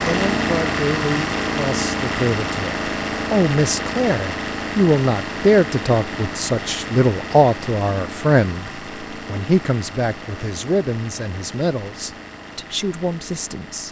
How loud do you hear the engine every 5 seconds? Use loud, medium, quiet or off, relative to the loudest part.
loud, medium, quiet.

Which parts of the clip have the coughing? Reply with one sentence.
You can't hear the coughing here.